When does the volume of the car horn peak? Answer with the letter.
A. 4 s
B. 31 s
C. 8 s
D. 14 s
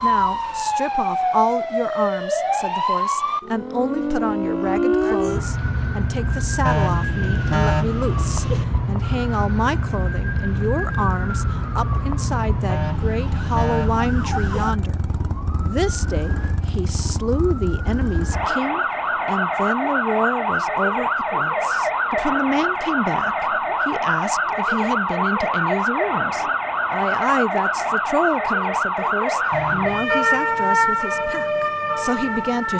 C.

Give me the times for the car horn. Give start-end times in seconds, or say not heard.
6.7-8.7, 12.7-14.7, 29.5-30.1.